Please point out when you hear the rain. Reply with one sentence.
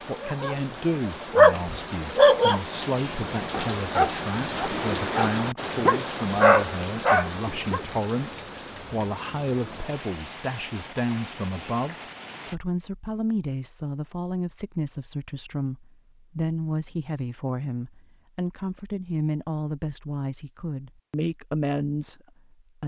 You can hear the rain from 0.0 to 12.6 s.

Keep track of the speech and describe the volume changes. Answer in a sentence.
The volume of the speech stays about the same.